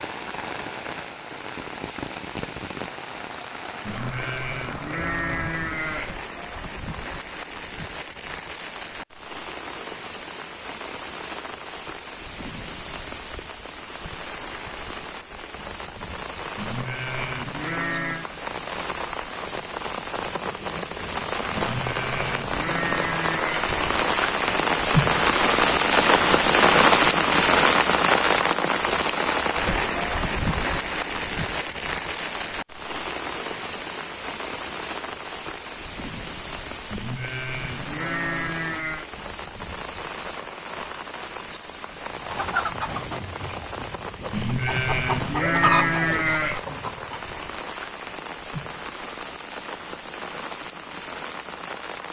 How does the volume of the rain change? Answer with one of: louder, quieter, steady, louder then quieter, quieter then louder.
louder then quieter.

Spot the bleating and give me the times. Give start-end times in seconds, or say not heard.
3.9-6.2, 16.6-18.3, 21.6-23.8, 36.9-39.0, 44.3-46.6.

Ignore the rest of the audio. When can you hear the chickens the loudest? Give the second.
46 s.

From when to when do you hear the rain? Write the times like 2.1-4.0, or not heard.
0.0-52.0.